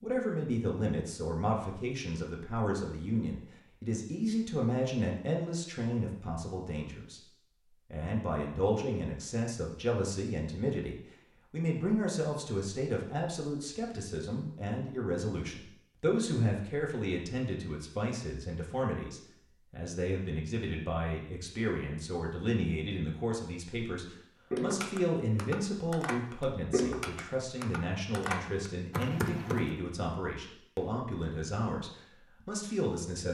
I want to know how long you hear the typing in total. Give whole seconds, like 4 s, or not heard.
5 s.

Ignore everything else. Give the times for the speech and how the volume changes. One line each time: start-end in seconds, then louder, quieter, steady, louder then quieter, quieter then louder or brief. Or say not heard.
0.0-33.2 steady.